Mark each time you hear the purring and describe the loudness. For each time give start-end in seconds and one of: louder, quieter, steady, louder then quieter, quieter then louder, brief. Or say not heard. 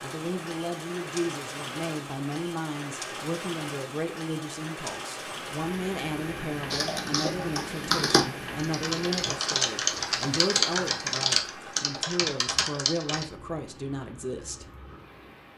not heard.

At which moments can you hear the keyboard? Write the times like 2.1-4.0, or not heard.
6.7-13.2.